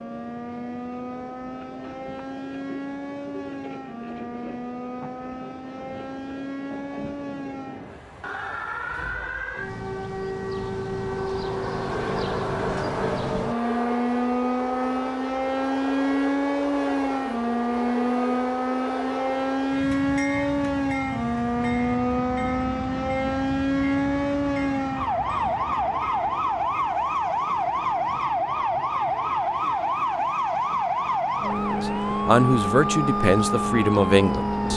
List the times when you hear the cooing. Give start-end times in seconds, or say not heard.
not heard.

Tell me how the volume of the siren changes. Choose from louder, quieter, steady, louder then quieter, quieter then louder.
louder.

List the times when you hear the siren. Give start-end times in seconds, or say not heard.
0.0-34.7.